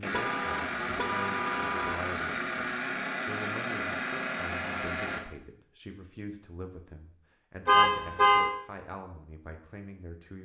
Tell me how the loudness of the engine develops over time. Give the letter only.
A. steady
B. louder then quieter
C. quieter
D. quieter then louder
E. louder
A.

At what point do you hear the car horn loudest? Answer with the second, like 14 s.
8 s.